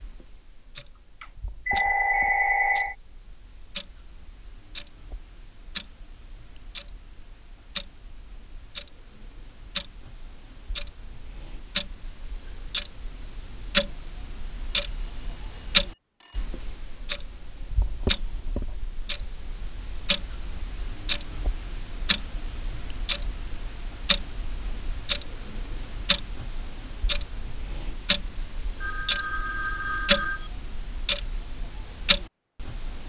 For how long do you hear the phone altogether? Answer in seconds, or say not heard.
5 s.